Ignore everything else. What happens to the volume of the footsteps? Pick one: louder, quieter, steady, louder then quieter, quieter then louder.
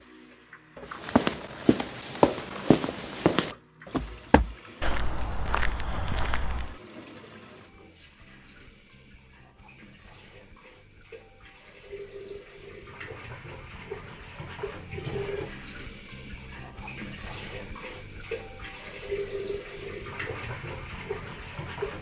quieter.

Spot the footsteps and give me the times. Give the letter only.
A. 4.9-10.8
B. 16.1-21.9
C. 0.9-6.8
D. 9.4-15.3
C.